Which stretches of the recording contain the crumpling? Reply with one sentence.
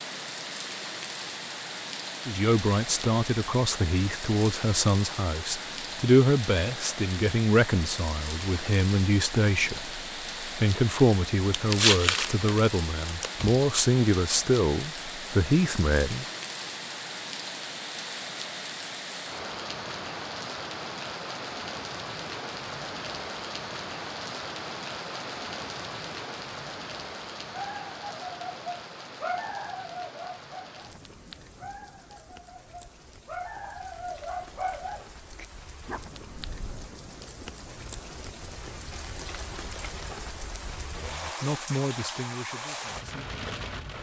You can hear the crumpling from 11.5 to 13.6 s.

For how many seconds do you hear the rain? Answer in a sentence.
The rain can be heard for 44 seconds in total.